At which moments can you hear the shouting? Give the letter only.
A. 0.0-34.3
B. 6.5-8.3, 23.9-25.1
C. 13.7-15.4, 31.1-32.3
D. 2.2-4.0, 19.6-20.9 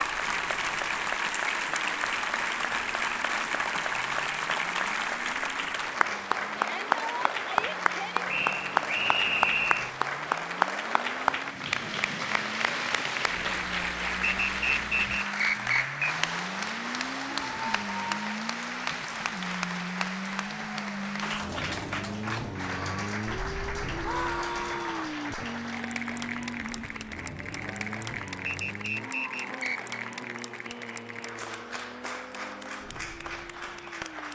B.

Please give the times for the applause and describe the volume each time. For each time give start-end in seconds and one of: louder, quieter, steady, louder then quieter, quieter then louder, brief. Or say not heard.
0.0-34.3 quieter.